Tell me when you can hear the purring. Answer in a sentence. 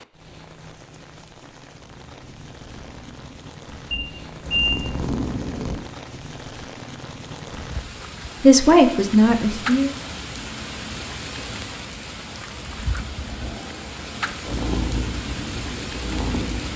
The purring can be heard from 1.8 to 5.8 s and from 12.9 to 16.7 s.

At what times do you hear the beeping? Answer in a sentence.
You can hear the beeping from 3.9 to 4.8 s.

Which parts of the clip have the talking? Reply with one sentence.
You can hear the talking from 8.4 to 9.9 s.